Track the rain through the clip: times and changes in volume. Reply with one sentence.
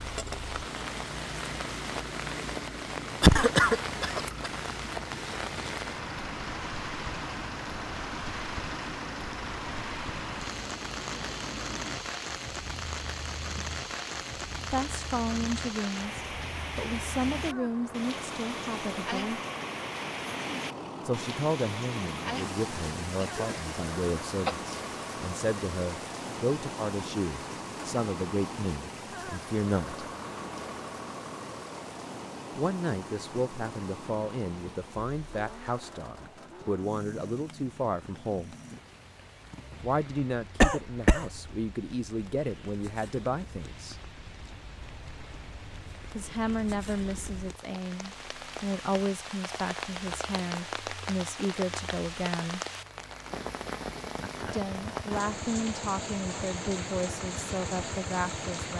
The rain can be heard from 0.0 to 58.7 s, getting quieter then louder.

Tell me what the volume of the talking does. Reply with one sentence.
The loudness of the talking stays about the same.